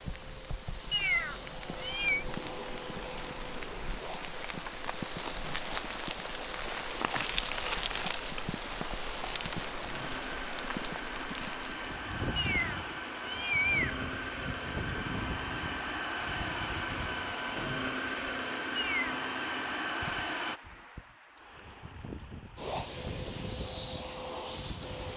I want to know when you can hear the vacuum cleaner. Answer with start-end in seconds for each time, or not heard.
0.0-20.6, 22.6-25.1.